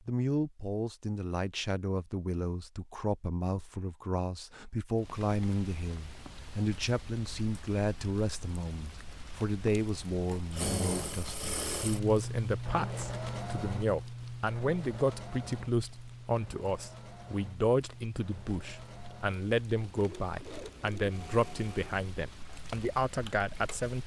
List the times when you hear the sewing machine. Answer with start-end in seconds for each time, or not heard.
10.2-23.9.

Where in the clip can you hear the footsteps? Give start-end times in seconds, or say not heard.
not heard.